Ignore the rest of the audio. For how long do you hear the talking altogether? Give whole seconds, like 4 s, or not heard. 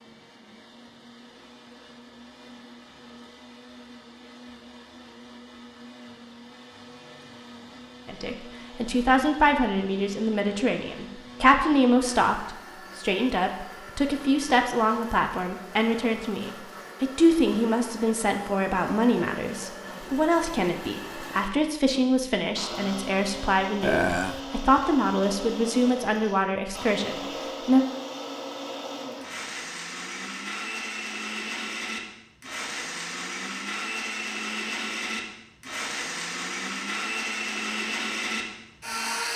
20 s.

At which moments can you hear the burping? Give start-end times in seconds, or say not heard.
23.8-24.4.